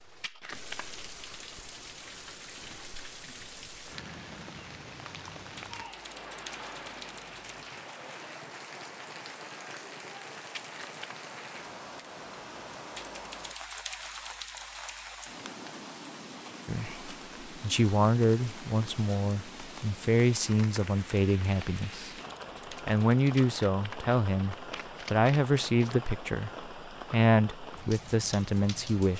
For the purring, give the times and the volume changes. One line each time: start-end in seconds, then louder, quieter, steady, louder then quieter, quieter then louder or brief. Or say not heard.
not heard.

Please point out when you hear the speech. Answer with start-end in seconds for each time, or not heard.
16.6-22.1, 22.7-29.1.